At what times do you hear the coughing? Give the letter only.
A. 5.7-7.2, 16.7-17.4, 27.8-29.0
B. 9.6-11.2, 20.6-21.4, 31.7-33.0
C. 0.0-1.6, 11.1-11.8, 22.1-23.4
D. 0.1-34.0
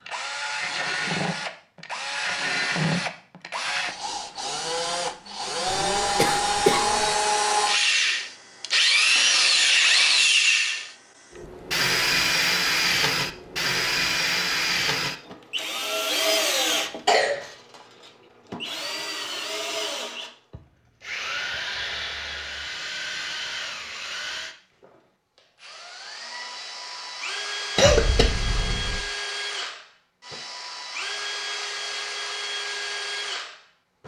A.